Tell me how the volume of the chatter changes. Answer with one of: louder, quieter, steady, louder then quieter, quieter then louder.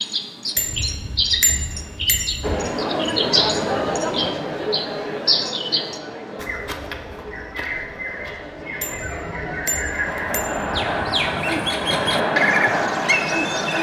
quieter then louder.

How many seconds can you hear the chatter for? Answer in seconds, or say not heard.
11 s.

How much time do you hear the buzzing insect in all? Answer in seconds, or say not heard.
not heard.